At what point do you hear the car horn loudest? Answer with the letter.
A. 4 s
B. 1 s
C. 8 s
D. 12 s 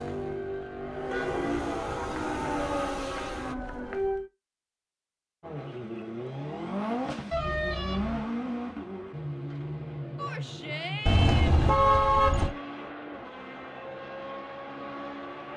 D.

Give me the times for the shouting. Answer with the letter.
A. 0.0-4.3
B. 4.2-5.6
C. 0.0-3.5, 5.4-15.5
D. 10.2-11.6
D.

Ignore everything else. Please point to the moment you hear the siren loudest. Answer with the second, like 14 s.
4 s.